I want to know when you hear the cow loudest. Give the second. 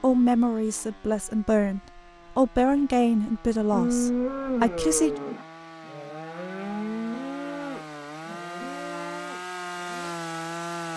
4 s.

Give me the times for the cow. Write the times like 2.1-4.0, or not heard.
3.7-10.2.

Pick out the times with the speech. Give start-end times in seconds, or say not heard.
0.0-5.2.